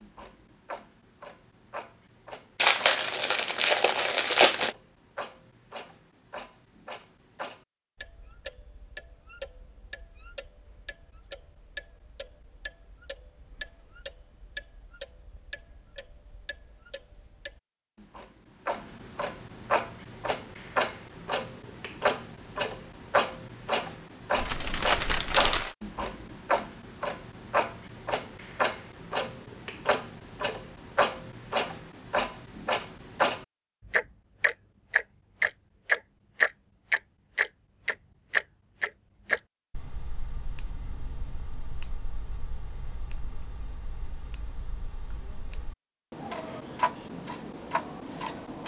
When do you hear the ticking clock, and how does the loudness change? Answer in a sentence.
The ticking clock can be heard from 0.0 to 48.6 s, getting louder then quieter.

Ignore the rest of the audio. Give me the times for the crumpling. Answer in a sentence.
The crumpling can be heard from 2.5 to 4.8 s and from 24.4 to 25.8 s.